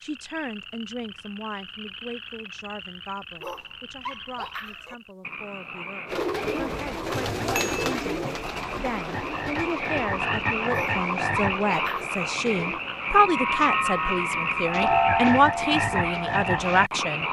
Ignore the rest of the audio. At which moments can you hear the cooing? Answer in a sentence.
The cooing can be heard from 6.0 to 12.8 s.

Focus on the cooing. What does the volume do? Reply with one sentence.
The volume of the cooing goes down.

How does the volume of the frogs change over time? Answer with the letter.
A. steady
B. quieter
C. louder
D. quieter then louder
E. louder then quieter
C.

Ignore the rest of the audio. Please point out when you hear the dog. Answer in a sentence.
You can hear the dog from 3.4 to 5.0 s and from 10.7 to 12.2 s.